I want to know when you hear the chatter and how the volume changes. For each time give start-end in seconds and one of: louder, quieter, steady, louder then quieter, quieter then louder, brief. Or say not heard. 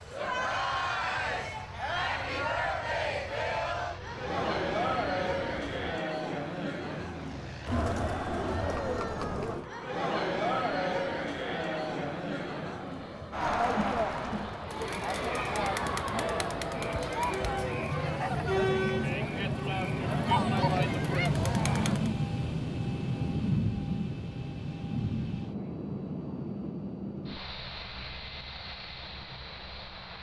0.1-22.1 steady.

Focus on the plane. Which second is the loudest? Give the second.
22 s.